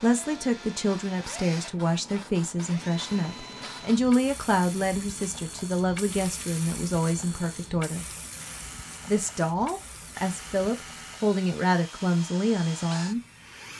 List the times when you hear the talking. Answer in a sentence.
The talking can be heard from 0.0 to 8.1 s and from 9.1 to 13.2 s.